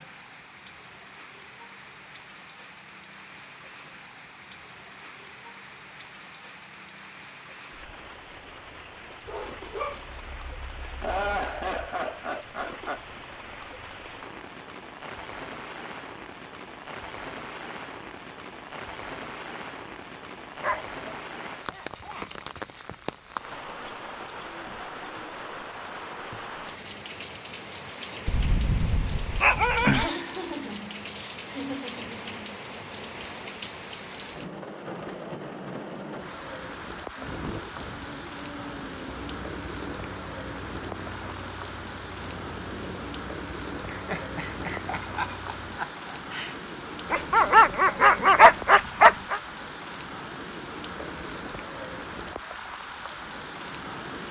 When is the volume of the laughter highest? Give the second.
11 s.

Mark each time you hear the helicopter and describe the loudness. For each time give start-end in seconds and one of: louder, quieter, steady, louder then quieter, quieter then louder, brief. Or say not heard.
37.1-45.8 steady.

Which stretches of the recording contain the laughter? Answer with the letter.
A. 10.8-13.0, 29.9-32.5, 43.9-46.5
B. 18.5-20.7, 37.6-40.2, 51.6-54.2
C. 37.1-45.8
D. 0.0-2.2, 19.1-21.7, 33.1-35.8
A.